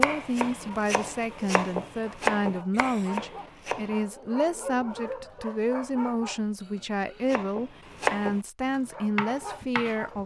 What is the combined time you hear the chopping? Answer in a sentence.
The chopping can be heard for 6 seconds in total.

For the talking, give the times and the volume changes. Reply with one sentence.
You can hear the talking from 0.0 to 10.2 s, at a steady volume.